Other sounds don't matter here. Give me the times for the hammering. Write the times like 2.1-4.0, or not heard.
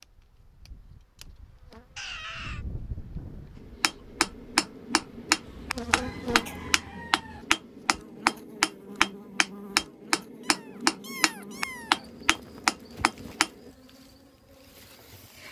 3.8-13.7.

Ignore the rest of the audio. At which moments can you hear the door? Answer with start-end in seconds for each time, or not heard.
not heard.